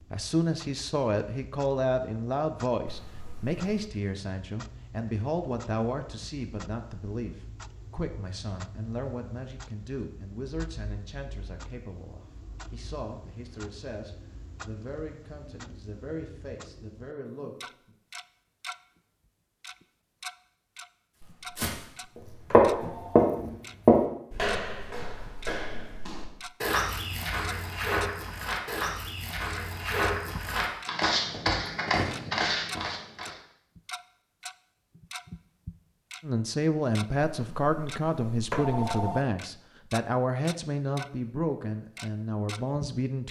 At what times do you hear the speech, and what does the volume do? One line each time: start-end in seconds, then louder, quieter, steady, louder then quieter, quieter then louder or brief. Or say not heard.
0.1-17.9 quieter
36.2-43.2 quieter.